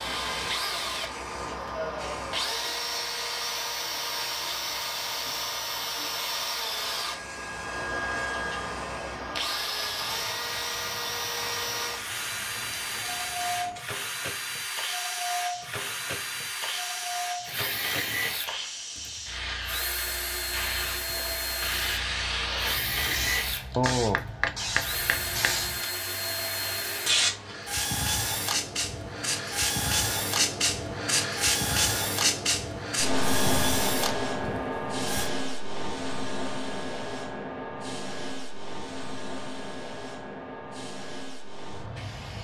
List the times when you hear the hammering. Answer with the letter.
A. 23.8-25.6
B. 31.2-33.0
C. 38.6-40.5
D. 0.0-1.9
A.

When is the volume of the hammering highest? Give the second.
24 s.